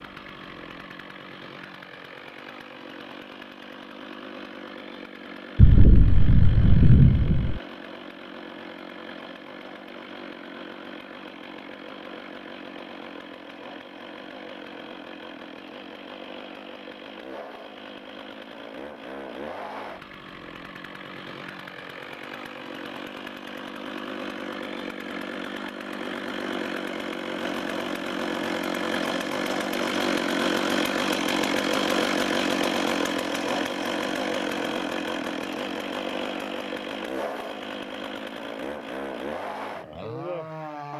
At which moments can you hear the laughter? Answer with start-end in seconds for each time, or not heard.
not heard.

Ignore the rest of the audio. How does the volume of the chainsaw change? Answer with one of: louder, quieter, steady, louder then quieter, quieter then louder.
louder.